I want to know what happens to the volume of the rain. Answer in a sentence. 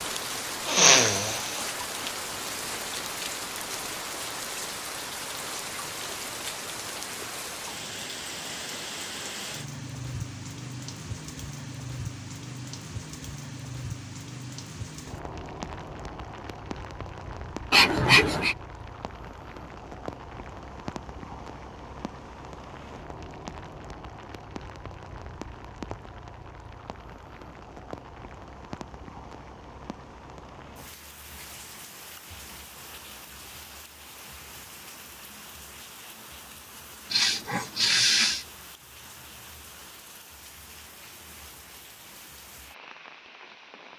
The loudness of the rain goes down.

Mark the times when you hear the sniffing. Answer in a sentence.
The sniffing can be heard from 0.7 to 1.7 s, from 17.7 to 18.6 s and from 37.1 to 38.5 s.